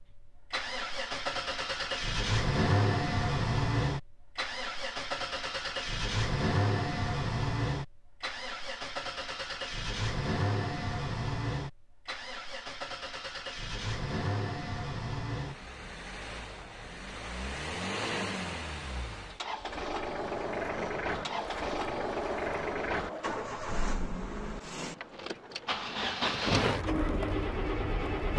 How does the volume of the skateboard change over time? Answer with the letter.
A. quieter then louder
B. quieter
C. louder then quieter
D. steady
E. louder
A.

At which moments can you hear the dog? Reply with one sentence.
You can't hear the dog here.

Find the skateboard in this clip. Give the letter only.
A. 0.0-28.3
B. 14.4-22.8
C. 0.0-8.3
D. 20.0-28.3
D.